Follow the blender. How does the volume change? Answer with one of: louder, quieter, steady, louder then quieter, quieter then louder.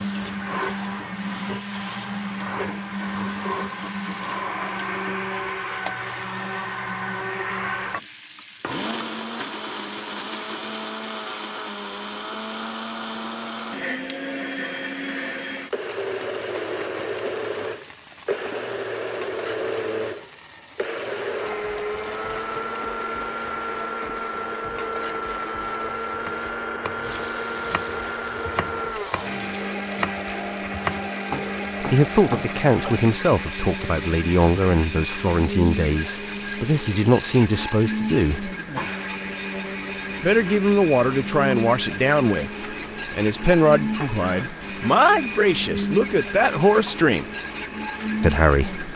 steady.